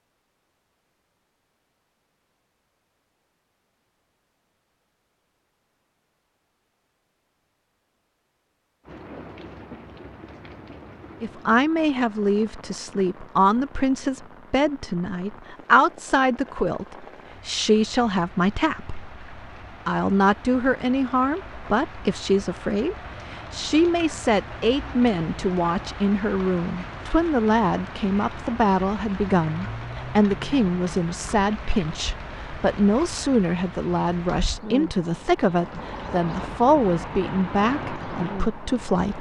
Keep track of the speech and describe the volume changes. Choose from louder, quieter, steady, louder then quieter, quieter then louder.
steady.